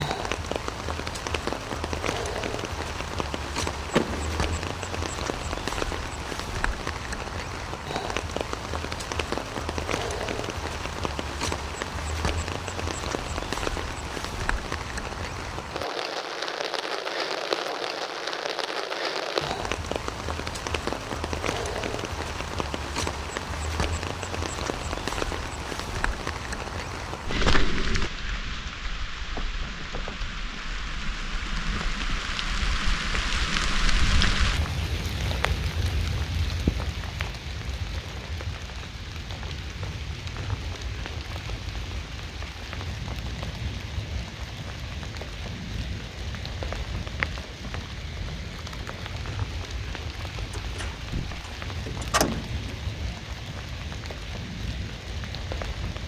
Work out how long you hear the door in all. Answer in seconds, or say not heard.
3 s.